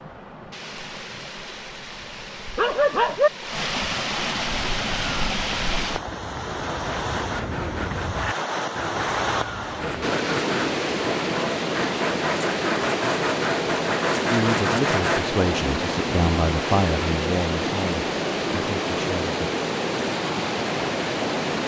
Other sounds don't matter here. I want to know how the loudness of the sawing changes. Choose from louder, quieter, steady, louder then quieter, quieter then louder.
louder.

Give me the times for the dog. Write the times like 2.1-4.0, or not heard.
2.5-3.3.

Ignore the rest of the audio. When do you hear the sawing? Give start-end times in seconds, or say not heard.
6.7-15.2.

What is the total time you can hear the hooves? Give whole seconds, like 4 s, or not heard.
not heard.